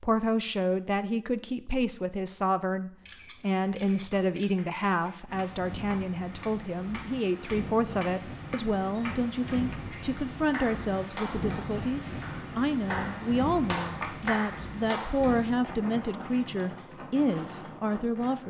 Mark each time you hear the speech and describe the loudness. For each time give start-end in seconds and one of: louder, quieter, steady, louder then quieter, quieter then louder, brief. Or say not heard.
0.0-18.4 steady.